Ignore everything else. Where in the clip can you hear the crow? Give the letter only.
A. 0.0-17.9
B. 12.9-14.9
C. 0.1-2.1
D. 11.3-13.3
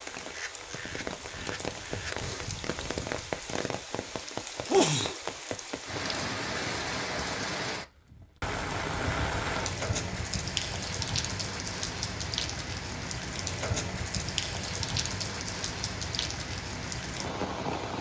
C.